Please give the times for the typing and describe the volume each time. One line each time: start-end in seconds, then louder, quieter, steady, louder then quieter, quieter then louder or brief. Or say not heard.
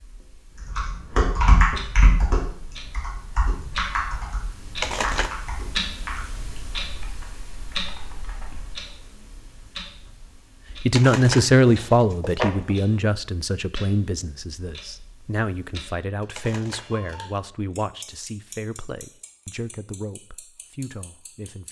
0.6-8.8 quieter.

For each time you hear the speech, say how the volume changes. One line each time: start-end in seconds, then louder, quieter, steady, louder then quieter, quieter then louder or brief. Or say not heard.
10.8-21.6 quieter.